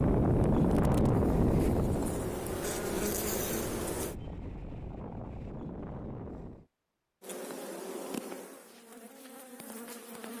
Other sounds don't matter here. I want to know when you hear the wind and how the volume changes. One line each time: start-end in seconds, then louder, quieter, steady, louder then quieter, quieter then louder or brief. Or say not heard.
0.0-6.7 quieter.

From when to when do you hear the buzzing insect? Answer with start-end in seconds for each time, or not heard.
0.0-4.2, 7.2-10.3.